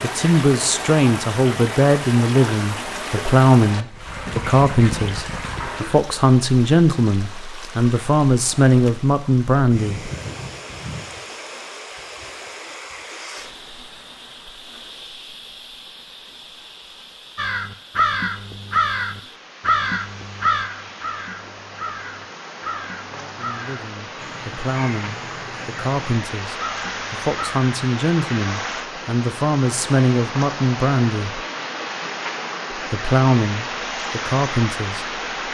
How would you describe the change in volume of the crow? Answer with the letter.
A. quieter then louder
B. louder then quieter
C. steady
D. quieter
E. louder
D.